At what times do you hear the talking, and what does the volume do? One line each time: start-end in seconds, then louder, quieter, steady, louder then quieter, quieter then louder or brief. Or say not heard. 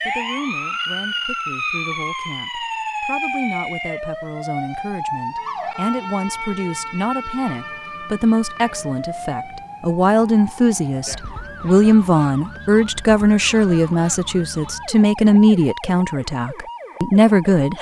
0.1-17.7 louder.